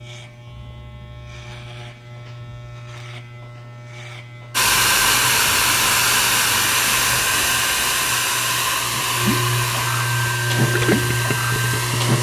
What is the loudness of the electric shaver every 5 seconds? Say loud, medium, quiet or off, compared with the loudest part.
quiet, medium, loud.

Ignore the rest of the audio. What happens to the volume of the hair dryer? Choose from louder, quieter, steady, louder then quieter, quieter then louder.
quieter.